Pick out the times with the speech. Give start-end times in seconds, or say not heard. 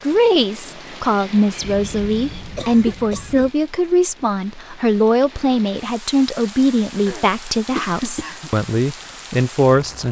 0.0-10.0.